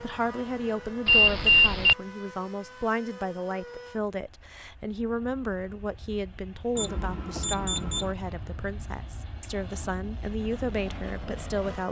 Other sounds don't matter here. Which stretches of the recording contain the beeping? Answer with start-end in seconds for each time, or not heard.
1.1-1.9, 6.8-8.2.